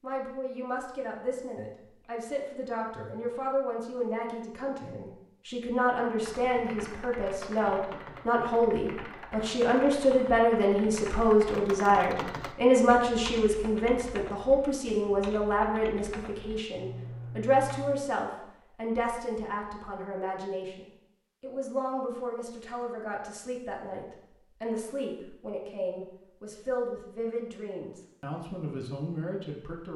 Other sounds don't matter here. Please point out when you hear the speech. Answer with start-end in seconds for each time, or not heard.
0.0-29.9.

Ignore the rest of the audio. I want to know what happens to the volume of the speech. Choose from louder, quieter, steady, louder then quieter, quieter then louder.
louder then quieter.